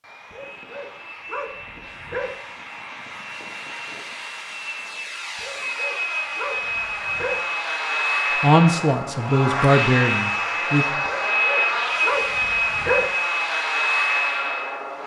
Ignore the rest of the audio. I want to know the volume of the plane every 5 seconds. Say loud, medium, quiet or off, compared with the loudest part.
quiet, loud, loud.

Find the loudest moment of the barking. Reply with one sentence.
The loudest moment of the barking is at 13 seconds.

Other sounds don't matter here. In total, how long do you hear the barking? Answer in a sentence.
You can hear the barking for 6 seconds altogether.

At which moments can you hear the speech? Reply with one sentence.
The speech can be heard from 8.4 to 10.8 s.